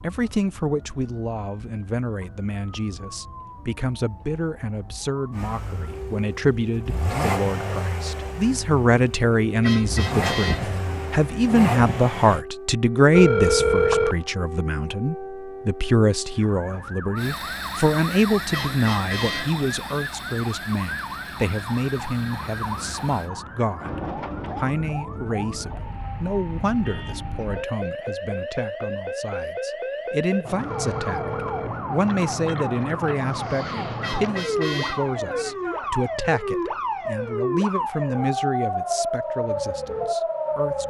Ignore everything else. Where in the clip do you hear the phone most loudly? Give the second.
14 s.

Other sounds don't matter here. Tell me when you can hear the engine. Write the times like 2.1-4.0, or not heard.
5.3-12.4, 17.1-23.3.